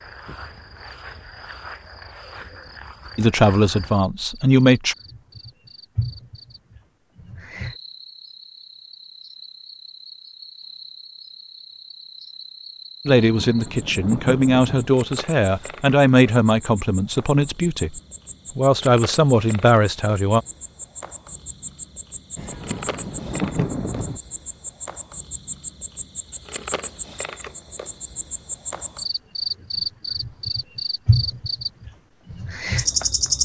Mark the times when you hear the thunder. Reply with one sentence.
You can hear the thunder from 13.2 to 14.9 s and from 22.4 to 24.2 s.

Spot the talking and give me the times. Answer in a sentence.
You can hear the talking from 3.1 to 5.0 s and from 13.1 to 20.4 s.